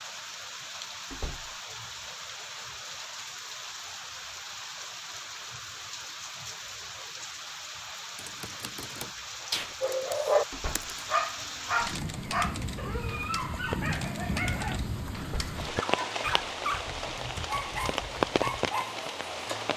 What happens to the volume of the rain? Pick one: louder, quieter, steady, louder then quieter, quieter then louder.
louder.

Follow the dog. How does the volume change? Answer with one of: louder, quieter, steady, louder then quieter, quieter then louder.
quieter.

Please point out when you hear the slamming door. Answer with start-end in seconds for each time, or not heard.
1.1-1.6, 10.5-10.9, 15.2-15.6.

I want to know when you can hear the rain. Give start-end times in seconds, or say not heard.
0.0-19.7.